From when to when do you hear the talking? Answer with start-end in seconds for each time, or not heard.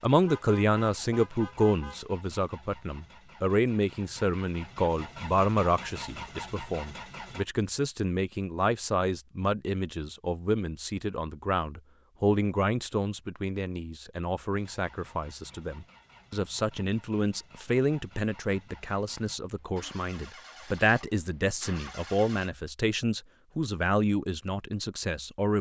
0.0-25.5.